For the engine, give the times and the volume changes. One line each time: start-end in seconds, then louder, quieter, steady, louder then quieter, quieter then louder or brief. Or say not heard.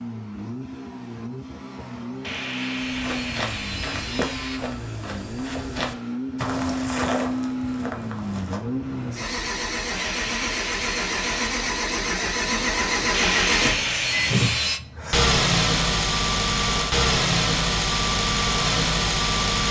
0.0-19.6 louder.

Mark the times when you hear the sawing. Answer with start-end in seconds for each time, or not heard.
2.2-4.6, 9.9-11.3, 13.1-14.8.